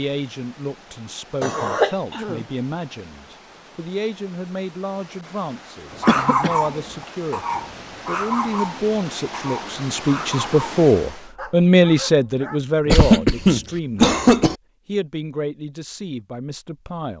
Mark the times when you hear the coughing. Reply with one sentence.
The coughing can be heard from 1.4 to 2.5 s, from 6.0 to 6.6 s and from 12.8 to 14.6 s.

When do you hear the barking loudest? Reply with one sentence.
The volume of the barking peaks at 6 seconds.